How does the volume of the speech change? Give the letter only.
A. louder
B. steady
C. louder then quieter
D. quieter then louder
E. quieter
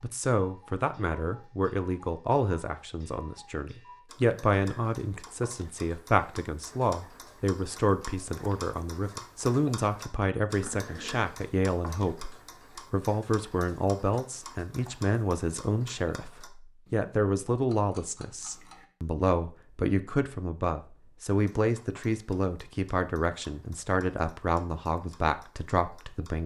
B.